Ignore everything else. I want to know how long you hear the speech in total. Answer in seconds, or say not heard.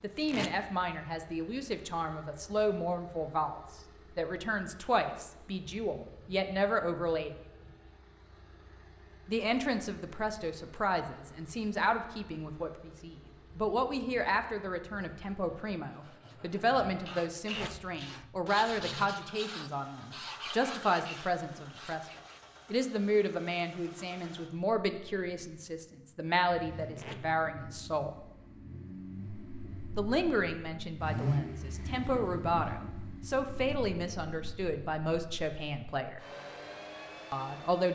33 s.